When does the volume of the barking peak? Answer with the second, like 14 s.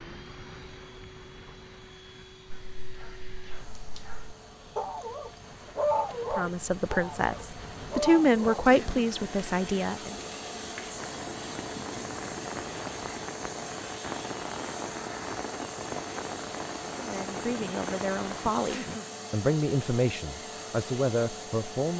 6 s.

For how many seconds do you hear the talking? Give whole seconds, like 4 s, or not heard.
9 s.